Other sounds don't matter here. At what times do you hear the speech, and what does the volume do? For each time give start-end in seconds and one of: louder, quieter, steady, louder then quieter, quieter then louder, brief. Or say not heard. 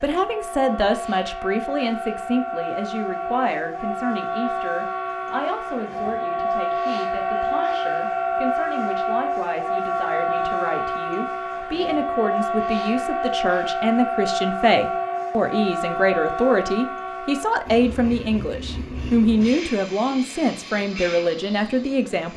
0.0-22.3 quieter then louder.